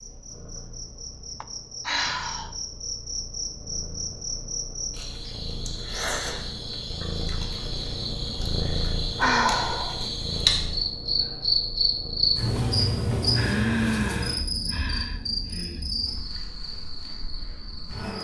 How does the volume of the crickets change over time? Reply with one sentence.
The loudness of the crickets goes up, then down.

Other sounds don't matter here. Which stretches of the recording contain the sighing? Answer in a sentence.
You can hear the sighing from 1.4 to 2.5 s, from 9.2 to 10.1 s and from 13.3 to 15.9 s.